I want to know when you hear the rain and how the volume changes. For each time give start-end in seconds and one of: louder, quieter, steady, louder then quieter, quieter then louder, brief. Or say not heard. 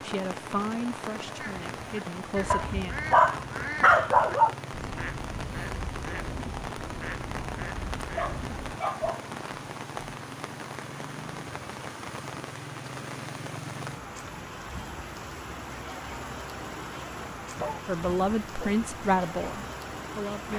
0.0-20.5 steady.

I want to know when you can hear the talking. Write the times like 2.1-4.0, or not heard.
0.0-3.0, 17.9-20.5.